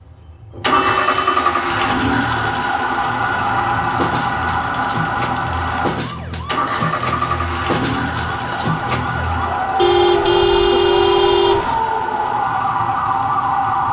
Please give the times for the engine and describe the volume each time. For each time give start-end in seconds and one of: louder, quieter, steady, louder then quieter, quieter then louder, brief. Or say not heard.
0.0-13.8 quieter.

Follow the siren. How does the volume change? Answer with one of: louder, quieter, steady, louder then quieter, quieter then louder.
louder.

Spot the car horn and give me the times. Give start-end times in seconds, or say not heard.
0.5-1.4, 9.8-11.8.